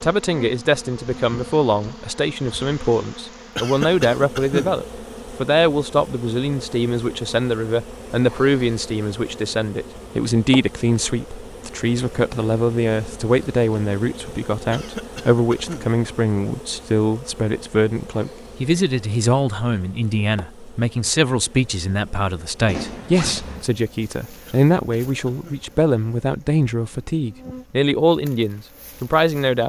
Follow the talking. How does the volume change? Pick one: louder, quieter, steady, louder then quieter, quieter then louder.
steady.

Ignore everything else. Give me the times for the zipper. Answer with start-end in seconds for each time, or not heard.
22.6-23.6.